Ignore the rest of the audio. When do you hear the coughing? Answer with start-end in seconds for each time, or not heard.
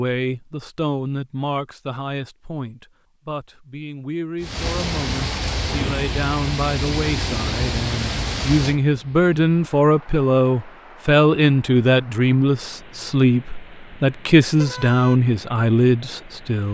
not heard.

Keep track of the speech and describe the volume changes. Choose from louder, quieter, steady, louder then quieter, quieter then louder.
louder.